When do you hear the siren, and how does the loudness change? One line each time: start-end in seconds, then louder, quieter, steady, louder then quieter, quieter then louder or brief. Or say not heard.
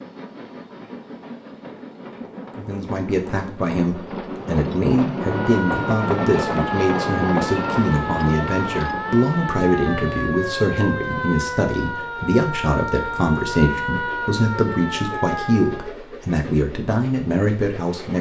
5.2-15.9 steady.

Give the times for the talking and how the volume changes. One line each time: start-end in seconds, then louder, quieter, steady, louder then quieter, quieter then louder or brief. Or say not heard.
2.5-18.1 steady.